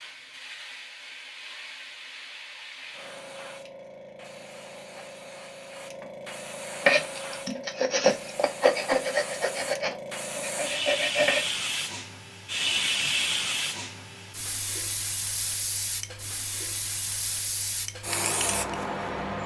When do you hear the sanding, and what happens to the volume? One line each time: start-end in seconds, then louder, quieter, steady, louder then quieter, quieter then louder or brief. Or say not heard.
6.8-11.6 louder then quieter.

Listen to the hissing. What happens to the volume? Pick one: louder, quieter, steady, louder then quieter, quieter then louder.
louder.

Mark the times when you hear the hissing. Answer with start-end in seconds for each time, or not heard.
0.0-19.4.